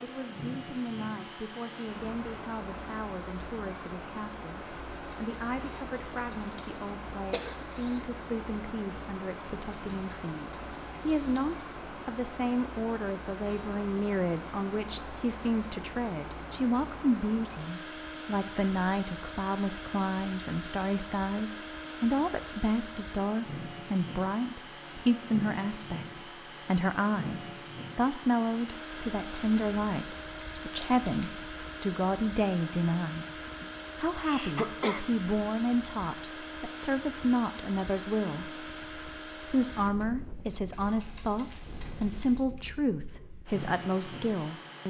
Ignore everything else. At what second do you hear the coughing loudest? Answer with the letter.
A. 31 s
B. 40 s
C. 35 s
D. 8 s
C.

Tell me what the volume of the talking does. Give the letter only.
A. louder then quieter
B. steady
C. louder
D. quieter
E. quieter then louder
C.